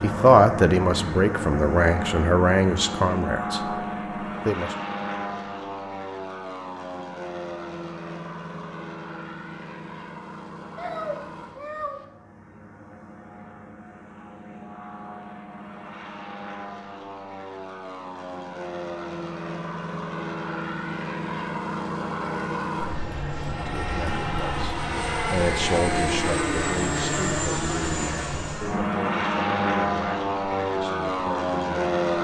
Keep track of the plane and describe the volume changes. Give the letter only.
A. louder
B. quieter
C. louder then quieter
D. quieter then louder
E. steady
D.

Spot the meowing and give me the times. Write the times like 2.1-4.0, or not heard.
10.8-12.1.